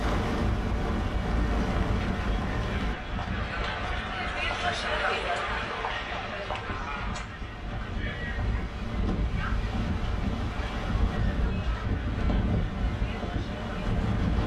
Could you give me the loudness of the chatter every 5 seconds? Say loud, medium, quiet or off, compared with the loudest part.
loud, loud, medium.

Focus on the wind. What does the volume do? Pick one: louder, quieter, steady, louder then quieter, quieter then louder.
quieter then louder.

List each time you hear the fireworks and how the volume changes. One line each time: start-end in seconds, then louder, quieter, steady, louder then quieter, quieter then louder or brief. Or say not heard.
not heard.